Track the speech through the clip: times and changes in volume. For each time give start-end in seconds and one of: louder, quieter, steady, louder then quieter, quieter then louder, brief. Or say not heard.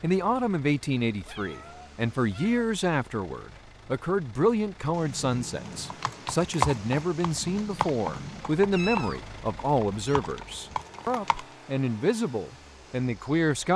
0.0-13.7 steady.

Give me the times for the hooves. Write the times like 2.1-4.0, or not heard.
5.9-11.4.